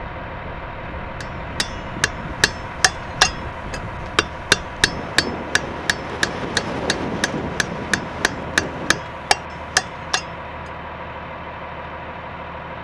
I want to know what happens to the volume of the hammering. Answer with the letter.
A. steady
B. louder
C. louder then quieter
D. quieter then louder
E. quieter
D.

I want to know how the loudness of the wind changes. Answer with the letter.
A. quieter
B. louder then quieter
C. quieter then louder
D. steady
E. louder
E.